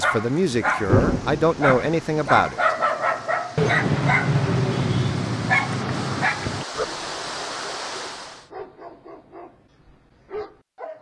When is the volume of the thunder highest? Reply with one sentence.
The loudest moment of the thunder is at 1 second.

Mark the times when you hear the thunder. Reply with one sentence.
The thunder can be heard from 0.8 to 2.4 s.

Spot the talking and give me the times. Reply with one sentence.
The talking can be heard from 0.0 to 2.6 s.